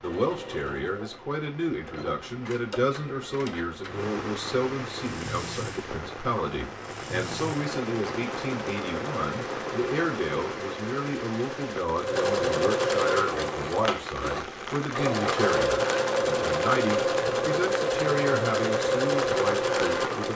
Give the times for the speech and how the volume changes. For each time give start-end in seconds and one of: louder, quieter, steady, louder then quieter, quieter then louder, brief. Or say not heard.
0.0-20.3 steady.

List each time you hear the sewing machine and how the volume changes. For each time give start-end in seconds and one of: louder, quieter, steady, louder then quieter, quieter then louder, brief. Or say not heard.
0.0-20.3 louder.